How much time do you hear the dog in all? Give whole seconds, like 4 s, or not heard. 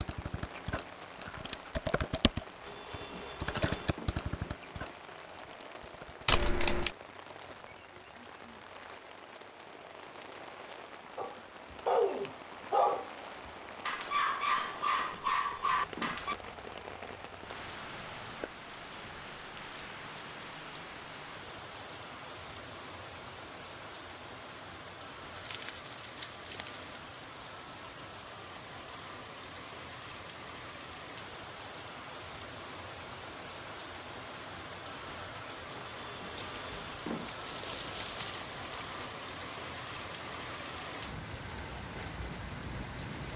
5 s.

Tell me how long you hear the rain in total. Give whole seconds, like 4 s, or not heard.
43 s.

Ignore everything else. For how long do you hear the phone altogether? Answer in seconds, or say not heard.
5 s.